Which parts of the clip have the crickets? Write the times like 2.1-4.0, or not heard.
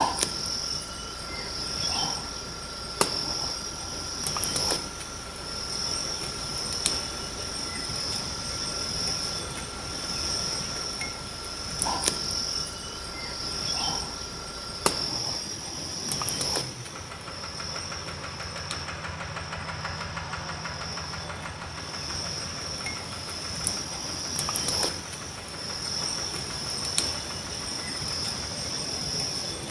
0.0-29.6.